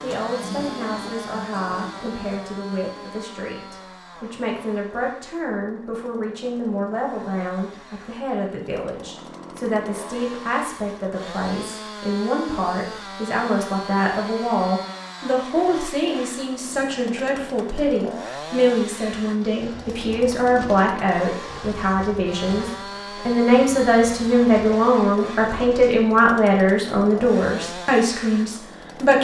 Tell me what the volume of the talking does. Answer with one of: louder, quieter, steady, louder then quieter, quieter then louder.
louder.